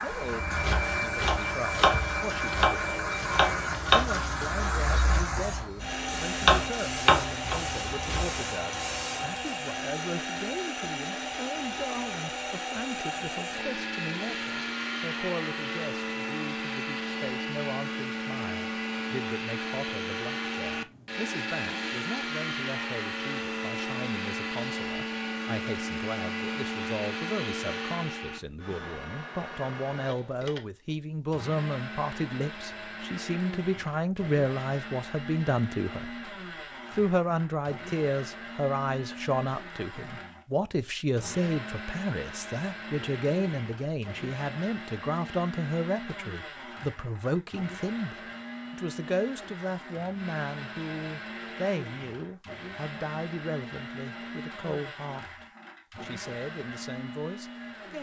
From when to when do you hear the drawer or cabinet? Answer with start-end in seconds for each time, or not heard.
not heard.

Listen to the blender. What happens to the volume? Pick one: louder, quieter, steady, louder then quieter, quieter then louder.
quieter.